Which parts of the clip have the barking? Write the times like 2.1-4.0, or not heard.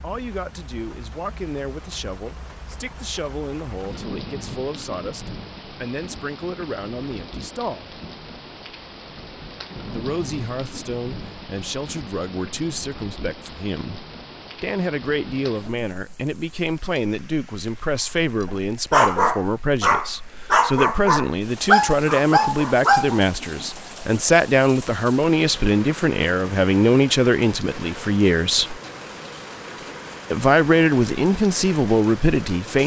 18.4-23.6.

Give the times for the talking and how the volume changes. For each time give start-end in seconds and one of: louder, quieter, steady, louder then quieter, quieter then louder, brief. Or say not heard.
0.0-8.0 steady
9.8-28.8 louder
30.3-32.8 brief.